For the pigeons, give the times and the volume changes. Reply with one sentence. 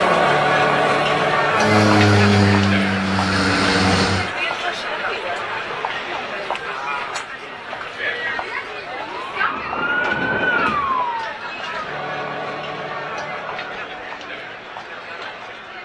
You can't hear the pigeons here.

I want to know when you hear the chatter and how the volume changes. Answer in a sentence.
The chatter can be heard from 0.0 to 15.8 s, getting quieter.